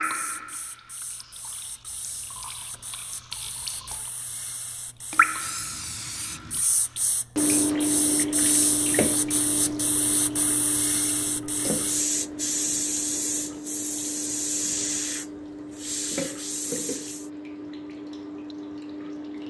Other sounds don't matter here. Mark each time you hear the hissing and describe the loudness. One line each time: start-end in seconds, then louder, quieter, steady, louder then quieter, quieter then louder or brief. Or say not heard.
0.0-17.3 louder.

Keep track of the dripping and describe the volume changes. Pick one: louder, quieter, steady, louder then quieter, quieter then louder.
louder then quieter.